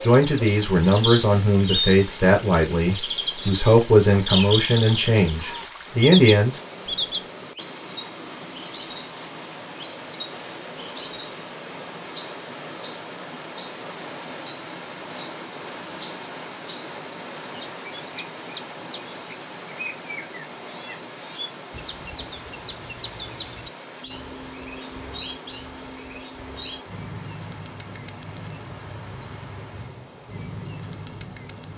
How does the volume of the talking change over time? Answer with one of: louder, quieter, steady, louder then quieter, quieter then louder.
steady.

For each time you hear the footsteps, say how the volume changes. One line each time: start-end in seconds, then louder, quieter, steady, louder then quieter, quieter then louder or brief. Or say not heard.
not heard.